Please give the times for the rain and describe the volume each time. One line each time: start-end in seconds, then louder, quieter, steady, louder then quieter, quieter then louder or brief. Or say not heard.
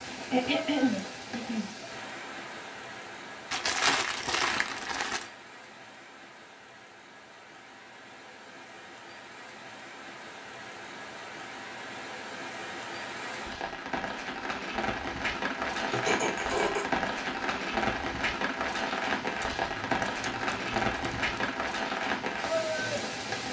0.0-23.4 quieter then louder.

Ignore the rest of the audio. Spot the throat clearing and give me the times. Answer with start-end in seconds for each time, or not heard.
0.3-1.8, 15.9-16.9.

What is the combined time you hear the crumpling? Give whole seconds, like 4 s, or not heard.
4 s.